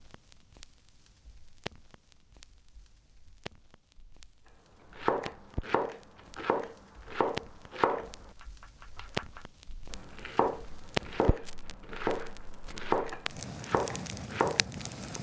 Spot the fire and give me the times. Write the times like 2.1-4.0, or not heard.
0.0-15.1.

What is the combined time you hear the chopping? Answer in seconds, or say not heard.
10 s.